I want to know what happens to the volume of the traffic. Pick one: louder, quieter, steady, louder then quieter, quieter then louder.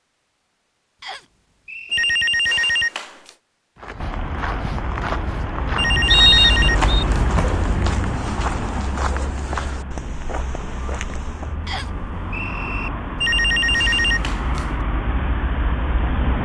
quieter then louder.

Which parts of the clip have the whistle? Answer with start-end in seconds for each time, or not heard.
1.0-2.2, 6.0-7.0, 11.7-12.9.